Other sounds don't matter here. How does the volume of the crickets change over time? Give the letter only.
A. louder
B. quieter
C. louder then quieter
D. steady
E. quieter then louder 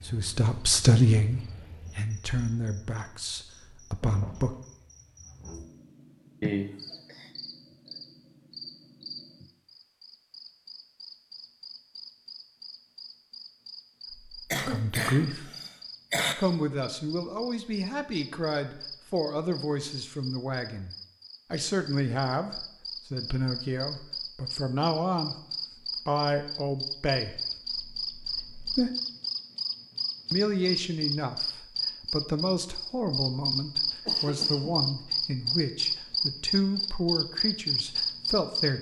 A.